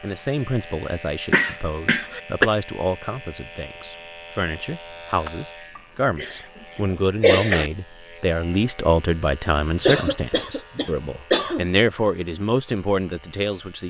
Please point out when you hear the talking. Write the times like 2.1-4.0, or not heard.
0.0-13.8.